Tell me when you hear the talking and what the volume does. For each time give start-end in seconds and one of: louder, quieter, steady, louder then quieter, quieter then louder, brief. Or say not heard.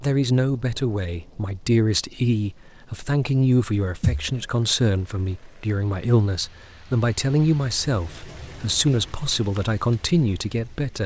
0.0-11.0 steady.